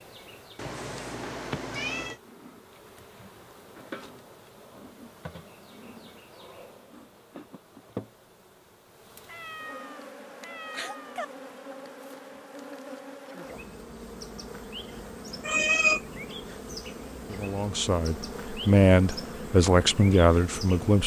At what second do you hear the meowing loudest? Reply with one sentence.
The loudest moment of the meowing is at 16 seconds.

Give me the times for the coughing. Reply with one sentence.
You can't hear the coughing here.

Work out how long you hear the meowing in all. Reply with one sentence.
The meowing can be heard for 4 seconds in total.